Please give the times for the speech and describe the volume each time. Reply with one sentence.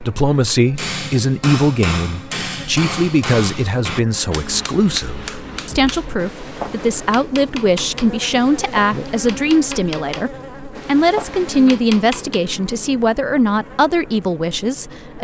The speech can be heard from 0.0 to 15.2 s, at a steady volume.